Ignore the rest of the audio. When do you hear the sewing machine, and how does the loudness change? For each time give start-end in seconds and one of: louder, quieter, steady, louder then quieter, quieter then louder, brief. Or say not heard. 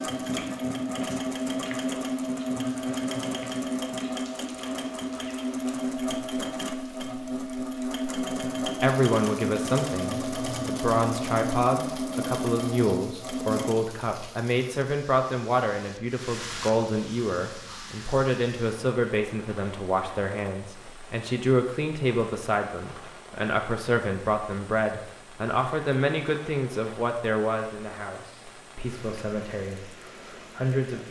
0.0-13.8 steady.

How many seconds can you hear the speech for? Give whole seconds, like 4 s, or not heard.
22 s.